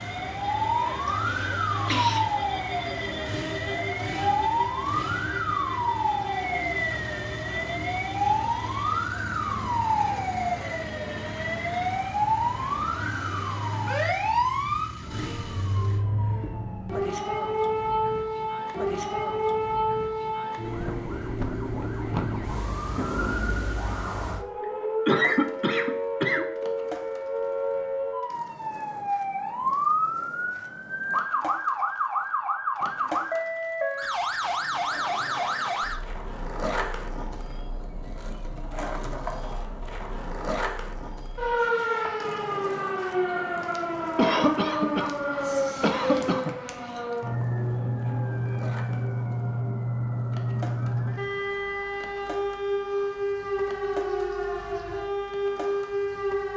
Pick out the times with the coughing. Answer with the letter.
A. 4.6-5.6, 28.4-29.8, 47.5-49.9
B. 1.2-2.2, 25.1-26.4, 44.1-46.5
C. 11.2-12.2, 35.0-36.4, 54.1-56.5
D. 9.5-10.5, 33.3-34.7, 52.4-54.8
B.